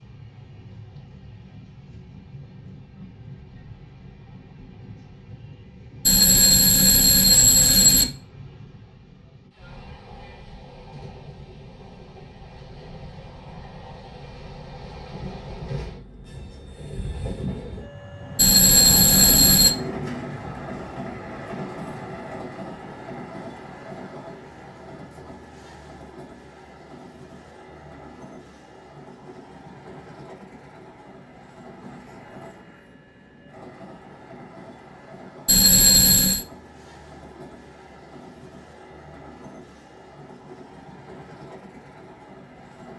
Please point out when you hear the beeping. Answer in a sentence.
You can hear the beeping from 6.0 to 8.1 s, from 18.4 to 19.8 s and from 35.5 to 36.5 s.